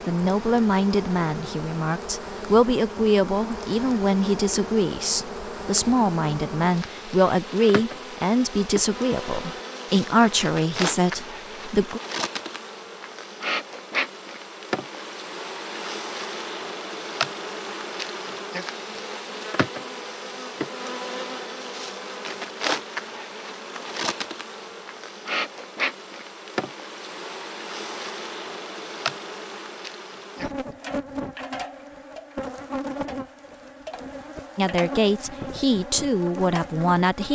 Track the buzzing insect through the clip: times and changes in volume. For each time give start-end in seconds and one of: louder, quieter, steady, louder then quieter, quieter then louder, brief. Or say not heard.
0.0-37.3 steady.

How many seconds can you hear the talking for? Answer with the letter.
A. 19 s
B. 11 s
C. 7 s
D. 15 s
D.